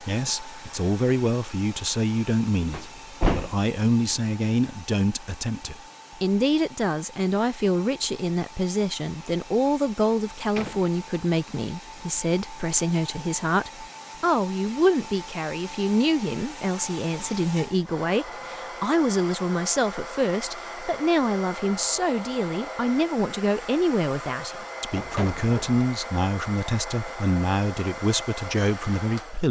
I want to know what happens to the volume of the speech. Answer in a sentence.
The volume of the speech stays about the same.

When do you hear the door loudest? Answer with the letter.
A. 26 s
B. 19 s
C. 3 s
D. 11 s
C.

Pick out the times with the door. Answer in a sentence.
The door can be heard from 2.7 to 3.6 s, from 10.0 to 10.9 s and from 24.9 to 25.9 s.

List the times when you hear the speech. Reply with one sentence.
The speech can be heard from 0.0 to 29.4 s.